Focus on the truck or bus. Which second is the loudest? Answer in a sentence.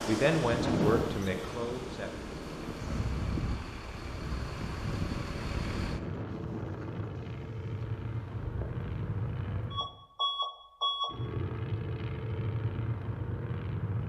The loudest moment of the truck or bus is at 11 seconds.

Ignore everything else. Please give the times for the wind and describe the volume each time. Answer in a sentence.
The wind can be heard from 0.0 to 9.9 s, getting quieter.